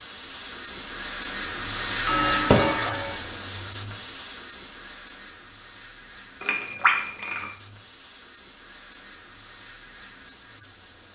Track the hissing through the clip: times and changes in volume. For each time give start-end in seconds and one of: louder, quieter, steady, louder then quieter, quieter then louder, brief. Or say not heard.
0.0-11.1 quieter.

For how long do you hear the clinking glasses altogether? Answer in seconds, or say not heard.
2 s.